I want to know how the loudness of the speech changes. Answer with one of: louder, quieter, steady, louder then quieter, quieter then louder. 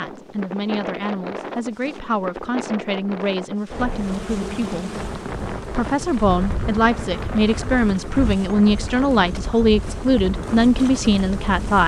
louder.